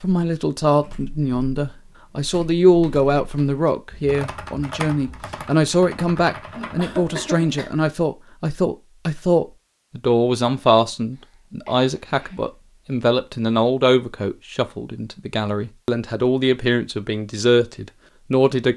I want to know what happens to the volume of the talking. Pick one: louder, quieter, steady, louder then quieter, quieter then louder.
steady.